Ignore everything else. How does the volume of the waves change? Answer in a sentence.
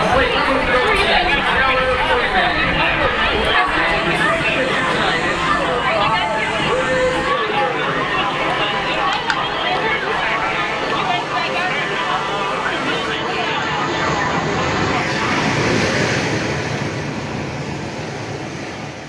The volume of the waves goes up.